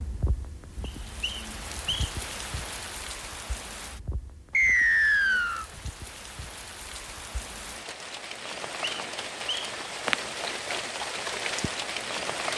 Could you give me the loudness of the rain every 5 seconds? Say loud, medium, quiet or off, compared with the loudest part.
medium, medium, loud.